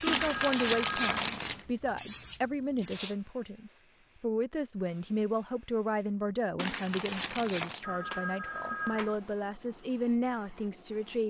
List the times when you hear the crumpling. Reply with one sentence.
You can hear the crumpling from 0.1 to 1.6 s and from 6.5 to 7.8 s.